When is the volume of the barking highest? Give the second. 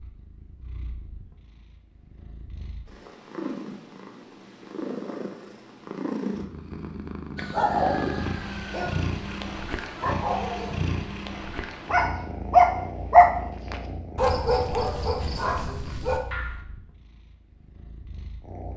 13 s.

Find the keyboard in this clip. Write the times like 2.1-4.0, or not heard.
not heard.